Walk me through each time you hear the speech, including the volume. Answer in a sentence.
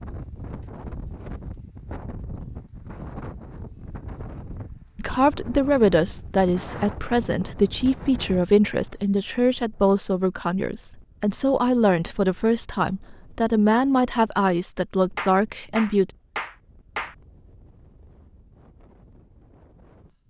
You can hear the speech from 5.0 to 16.1 s, at a steady volume.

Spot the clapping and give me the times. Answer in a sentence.
You can hear the clapping from 15.2 to 17.1 s.